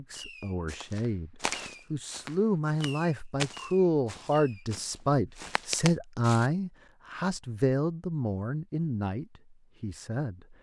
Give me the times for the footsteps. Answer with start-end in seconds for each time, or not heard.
0.7-6.5.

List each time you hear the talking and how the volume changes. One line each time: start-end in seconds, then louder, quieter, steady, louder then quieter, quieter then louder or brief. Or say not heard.
0.0-10.5 louder then quieter.